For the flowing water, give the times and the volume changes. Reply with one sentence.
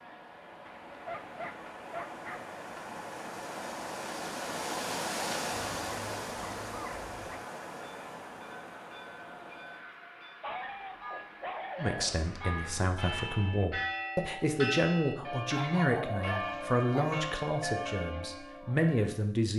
The flowing water can be heard from 0.0 to 12.9 s, getting louder then quieter.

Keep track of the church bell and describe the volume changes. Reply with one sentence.
The volume of the church bell goes up.